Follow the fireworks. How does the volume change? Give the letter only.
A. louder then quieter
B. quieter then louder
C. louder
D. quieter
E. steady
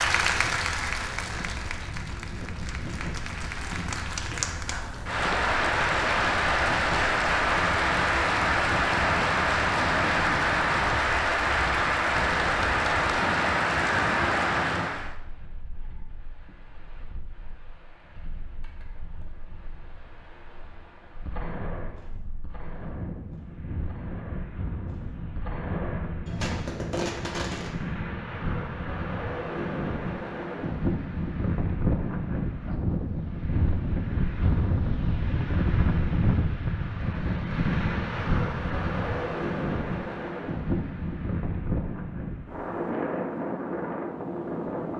B.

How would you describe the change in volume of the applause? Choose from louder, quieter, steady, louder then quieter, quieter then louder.
louder.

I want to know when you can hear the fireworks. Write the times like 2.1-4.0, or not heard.
21.2-27.7.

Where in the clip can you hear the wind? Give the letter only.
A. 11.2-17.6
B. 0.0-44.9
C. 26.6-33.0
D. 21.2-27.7
B.